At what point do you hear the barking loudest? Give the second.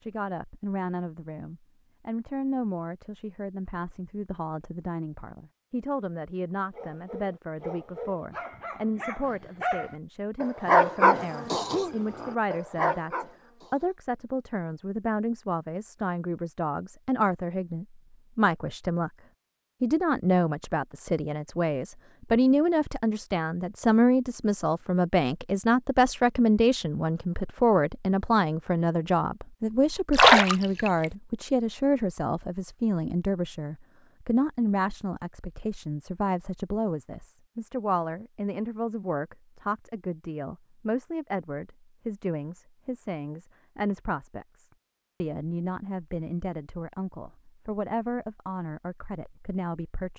11 s.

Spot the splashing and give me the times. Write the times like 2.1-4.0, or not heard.
30.1-31.1.